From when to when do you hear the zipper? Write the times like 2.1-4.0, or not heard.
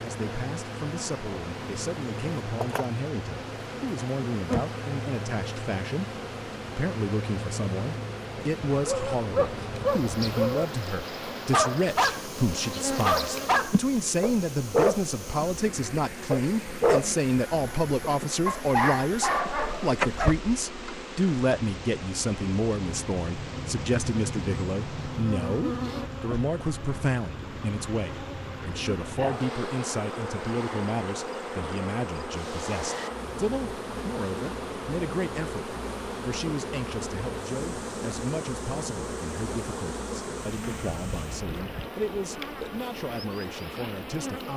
not heard.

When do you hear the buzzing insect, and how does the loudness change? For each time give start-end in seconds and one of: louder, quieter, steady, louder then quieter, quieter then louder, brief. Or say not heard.
0.0-44.5 steady.